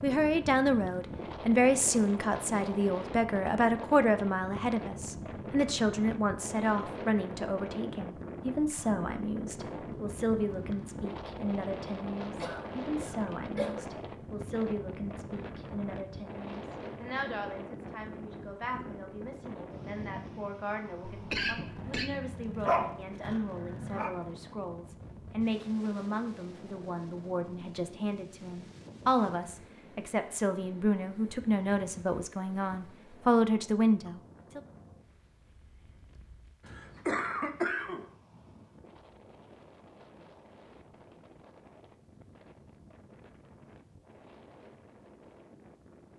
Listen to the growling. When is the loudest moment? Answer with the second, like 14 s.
23 s.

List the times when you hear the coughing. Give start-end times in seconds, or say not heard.
12.4-13.8, 21.1-22.1, 36.6-38.0.